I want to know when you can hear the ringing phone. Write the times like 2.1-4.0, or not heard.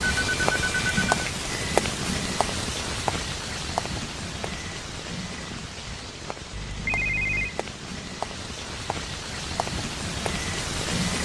0.1-1.3, 6.5-7.5.